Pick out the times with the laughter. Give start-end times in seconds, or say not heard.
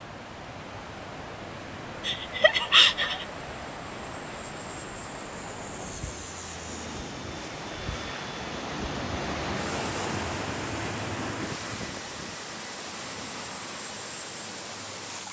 2.0-3.2.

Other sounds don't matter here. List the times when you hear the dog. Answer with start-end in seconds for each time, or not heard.
not heard.